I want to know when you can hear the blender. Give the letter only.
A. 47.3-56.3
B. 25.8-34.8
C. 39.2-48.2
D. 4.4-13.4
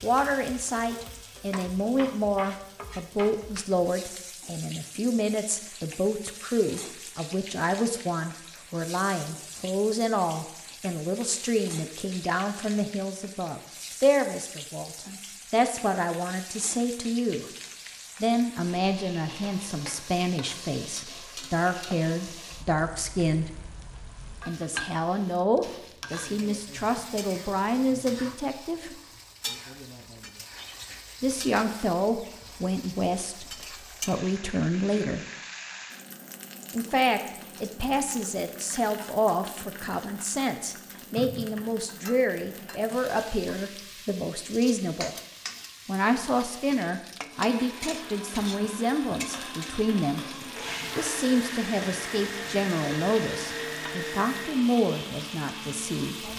A.